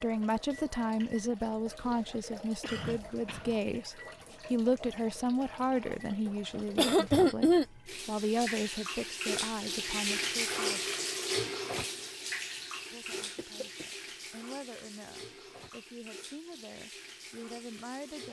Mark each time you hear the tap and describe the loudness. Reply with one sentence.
You can hear the tap from 0.0 to 18.2 s, getting louder then quieter.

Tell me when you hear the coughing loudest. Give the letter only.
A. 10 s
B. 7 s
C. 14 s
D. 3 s
B.